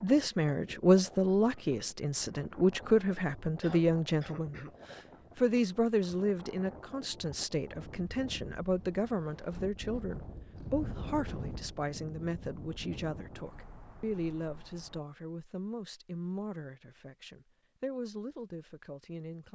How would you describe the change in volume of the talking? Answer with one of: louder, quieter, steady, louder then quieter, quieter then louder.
quieter.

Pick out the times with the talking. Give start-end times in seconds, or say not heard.
0.0-19.5.